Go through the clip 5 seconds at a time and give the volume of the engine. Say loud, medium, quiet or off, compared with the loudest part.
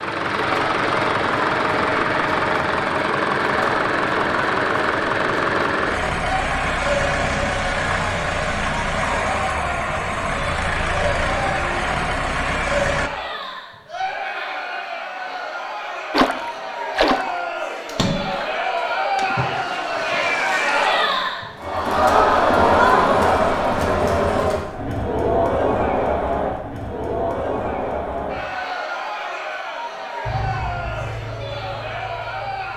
loud, loud, loud, off, off, off, quiet.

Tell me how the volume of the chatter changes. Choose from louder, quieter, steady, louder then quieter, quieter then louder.
louder then quieter.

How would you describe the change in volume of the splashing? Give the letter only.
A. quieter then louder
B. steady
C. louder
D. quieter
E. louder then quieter
D.